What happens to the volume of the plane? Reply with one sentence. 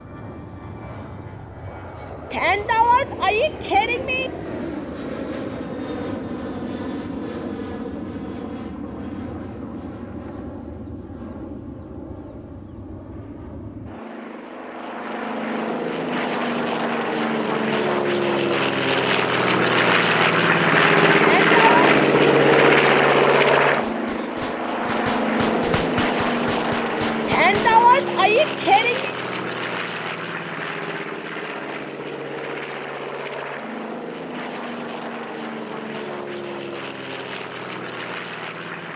The loudness of the plane goes up, then down.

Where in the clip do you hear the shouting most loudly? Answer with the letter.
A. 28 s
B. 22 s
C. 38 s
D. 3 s
A.